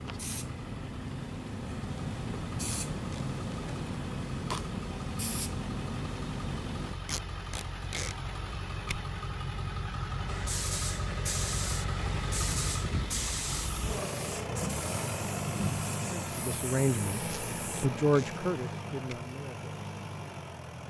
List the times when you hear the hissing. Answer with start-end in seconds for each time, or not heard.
0.0-7.0, 10.2-17.9.